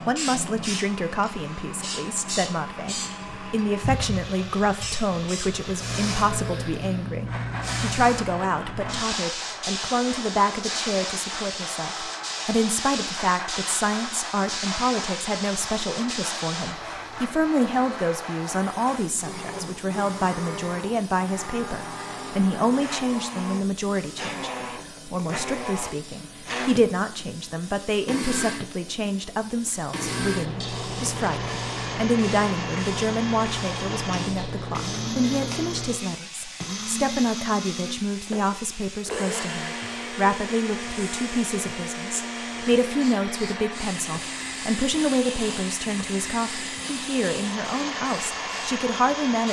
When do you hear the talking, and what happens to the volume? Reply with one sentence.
You can hear the talking from 0.0 to 49.4 s, at a steady volume.